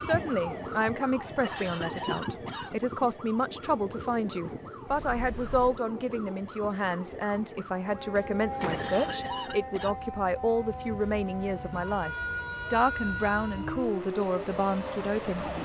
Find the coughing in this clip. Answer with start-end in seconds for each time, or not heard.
1.2-2.8, 8.5-9.9.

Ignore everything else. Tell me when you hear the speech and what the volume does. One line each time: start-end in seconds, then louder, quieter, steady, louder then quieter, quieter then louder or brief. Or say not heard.
0.0-15.4 steady.